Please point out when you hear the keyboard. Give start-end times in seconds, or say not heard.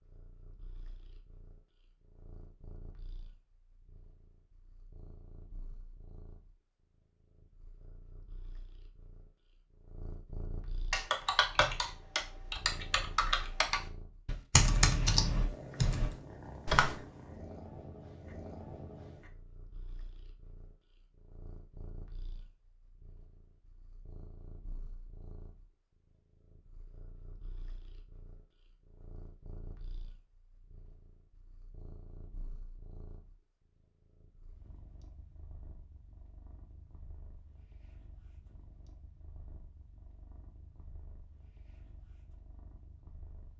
10.9-16.9.